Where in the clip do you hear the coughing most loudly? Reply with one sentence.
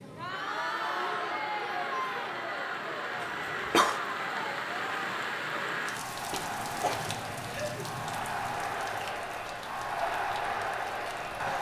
The volume of the coughing peaks at 4 seconds.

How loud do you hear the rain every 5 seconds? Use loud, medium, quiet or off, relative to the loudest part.
loud, loud, medium.